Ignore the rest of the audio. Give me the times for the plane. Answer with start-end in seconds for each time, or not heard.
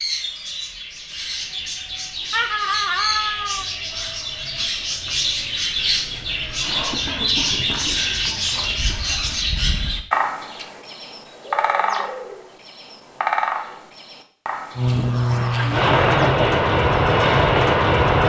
14.8-18.2.